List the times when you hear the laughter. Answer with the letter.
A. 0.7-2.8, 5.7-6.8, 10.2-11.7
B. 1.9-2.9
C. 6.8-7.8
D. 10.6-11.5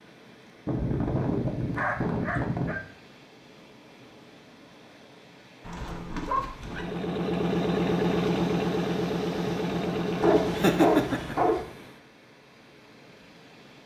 D.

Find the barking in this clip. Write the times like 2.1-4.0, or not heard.
0.7-2.8, 5.7-6.8, 10.2-11.7.